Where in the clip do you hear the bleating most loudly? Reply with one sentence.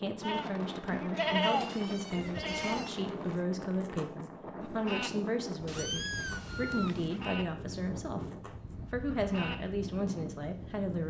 The loudest moment of the bleating is at 1 second.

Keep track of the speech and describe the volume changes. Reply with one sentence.
The loudness of the speech stays about the same.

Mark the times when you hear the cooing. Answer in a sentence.
You can't hear the cooing here.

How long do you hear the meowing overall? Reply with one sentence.
You can hear the meowing for 3 seconds altogether.